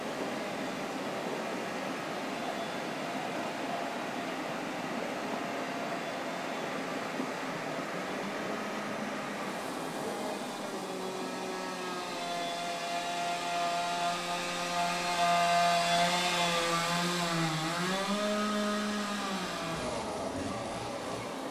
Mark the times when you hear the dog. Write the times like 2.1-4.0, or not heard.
not heard.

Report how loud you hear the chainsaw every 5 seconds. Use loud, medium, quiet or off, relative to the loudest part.
quiet, quiet, medium, loud, medium.